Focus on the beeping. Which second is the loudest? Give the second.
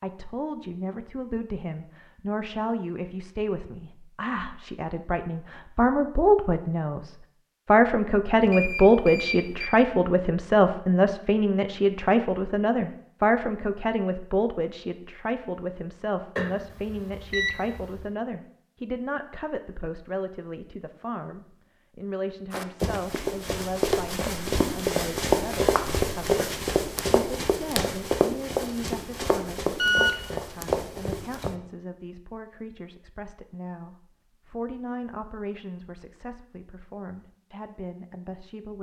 30 s.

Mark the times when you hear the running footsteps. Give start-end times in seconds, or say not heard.
22.5-31.6.